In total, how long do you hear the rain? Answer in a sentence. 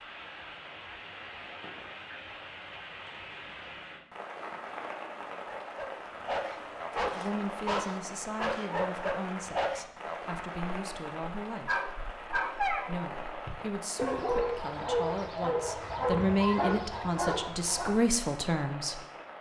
The rain can be heard for 19 seconds in total.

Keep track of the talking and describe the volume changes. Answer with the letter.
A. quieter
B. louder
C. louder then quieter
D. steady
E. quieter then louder
B.